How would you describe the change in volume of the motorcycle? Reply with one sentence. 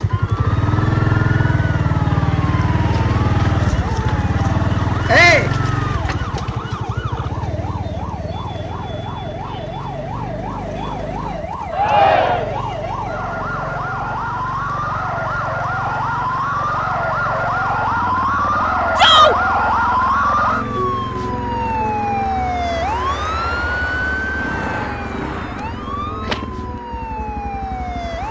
The volume of the motorcycle goes down.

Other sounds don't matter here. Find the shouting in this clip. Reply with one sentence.
The shouting can be heard from 5.0 to 5.5 s, from 11.7 to 12.6 s and from 18.9 to 19.4 s.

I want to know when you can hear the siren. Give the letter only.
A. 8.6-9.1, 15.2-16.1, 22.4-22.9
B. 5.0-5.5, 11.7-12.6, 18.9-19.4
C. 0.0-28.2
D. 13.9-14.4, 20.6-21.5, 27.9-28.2
C.